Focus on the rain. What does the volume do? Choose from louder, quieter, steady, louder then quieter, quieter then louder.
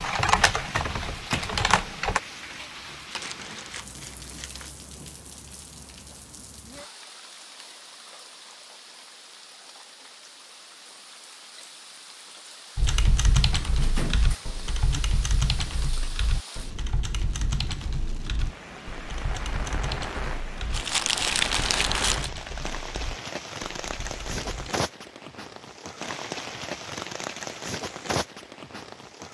quieter then louder.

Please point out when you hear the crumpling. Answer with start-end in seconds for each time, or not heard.
3.1-4.7, 20.7-22.3.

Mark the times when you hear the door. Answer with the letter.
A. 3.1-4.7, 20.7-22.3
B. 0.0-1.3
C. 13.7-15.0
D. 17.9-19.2
C.